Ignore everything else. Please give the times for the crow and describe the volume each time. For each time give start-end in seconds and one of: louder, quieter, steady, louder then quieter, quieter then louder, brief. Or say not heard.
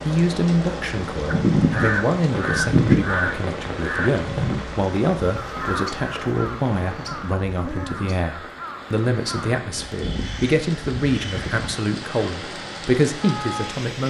1.2-11.8 quieter.